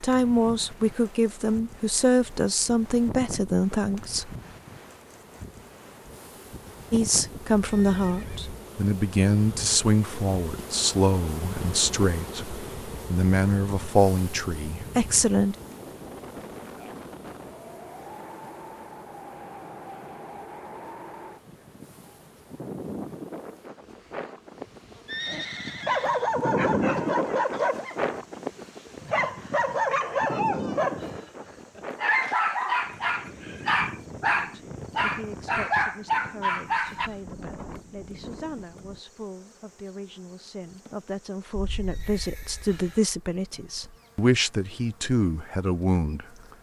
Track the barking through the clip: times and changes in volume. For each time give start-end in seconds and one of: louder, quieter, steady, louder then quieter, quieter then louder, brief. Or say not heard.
25.2-37.1 steady.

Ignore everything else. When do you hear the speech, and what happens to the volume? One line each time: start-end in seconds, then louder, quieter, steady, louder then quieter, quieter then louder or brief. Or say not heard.
0.0-4.3 steady
6.9-15.6 steady
34.2-46.2 louder.